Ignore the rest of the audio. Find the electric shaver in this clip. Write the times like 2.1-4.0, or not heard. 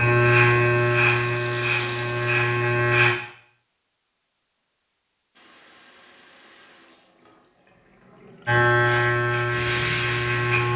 0.0-3.1, 8.4-10.7.